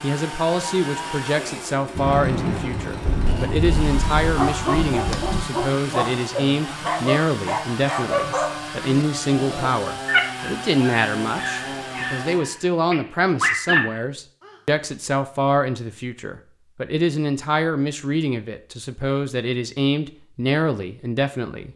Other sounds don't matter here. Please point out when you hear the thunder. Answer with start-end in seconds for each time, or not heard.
1.9-5.4.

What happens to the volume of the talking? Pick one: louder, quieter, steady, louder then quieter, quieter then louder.
steady.